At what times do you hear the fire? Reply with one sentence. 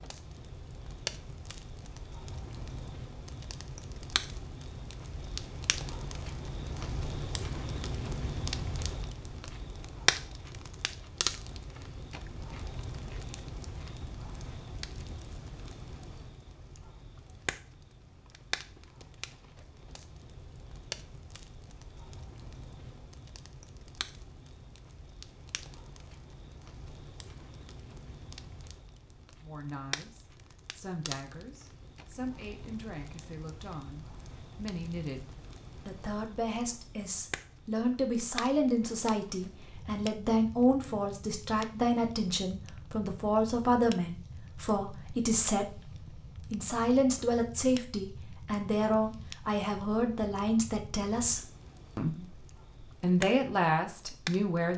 You can hear the fire from 0.0 to 54.7 s.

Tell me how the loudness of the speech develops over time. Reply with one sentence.
The loudness of the speech goes up.